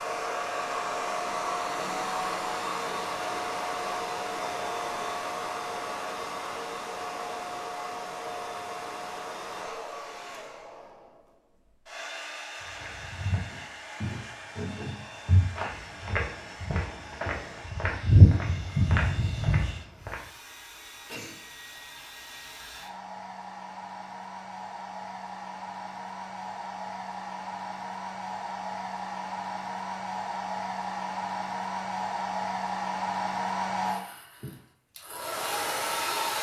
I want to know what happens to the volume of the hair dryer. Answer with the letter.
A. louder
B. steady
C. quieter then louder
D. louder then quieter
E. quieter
C.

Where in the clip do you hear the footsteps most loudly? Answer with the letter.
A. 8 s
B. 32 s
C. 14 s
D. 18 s
D.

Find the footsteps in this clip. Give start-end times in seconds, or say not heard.
12.8-20.1.